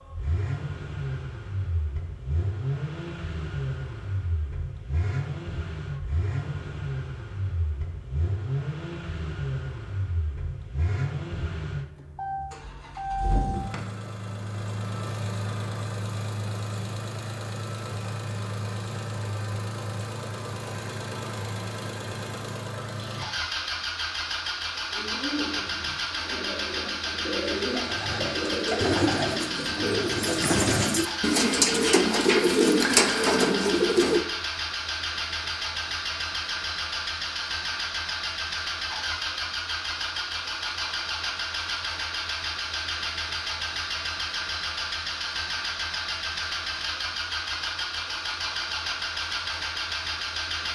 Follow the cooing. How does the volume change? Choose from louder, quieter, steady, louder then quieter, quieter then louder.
louder.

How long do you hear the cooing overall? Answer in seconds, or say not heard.
9 s.